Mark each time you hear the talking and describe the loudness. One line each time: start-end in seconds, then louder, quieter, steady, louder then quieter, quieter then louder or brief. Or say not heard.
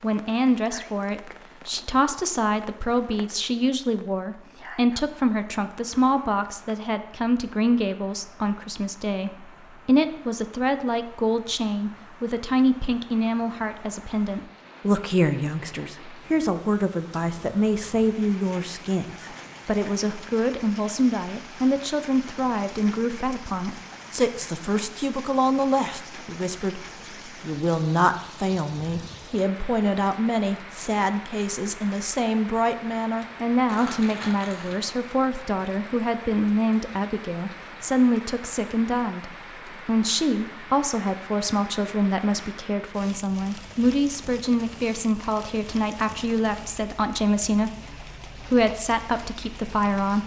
0.0-50.2 steady.